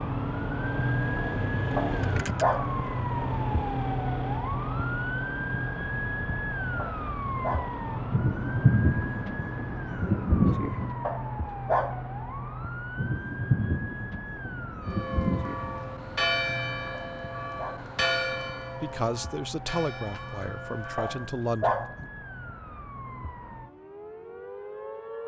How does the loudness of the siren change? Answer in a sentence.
The loudness of the siren goes down.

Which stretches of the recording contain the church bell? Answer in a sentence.
You can hear the church bell from 14.8 to 21.3 s.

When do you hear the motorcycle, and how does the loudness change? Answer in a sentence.
You can hear the motorcycle from 0.0 to 8.2 s, getting quieter.